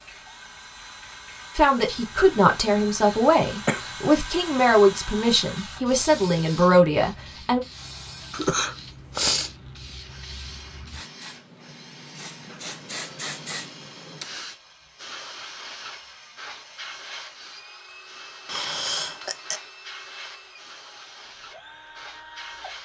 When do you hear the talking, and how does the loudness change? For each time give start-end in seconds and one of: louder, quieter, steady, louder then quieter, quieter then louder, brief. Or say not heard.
1.6-7.6 steady.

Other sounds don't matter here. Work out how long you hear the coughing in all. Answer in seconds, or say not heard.
3 s.